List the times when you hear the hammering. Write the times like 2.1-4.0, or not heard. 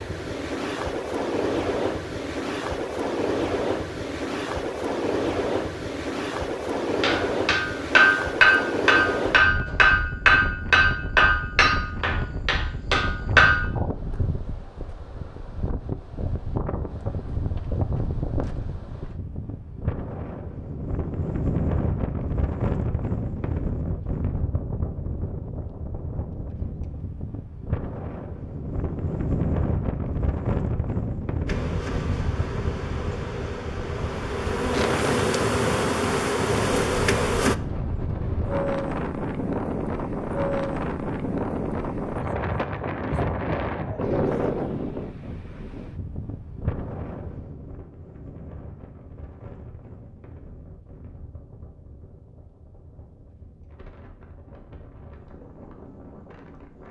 7.0-13.7.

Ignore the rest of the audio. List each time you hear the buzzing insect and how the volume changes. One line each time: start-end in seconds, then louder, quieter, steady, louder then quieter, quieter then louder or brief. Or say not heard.
31.4-37.5 louder.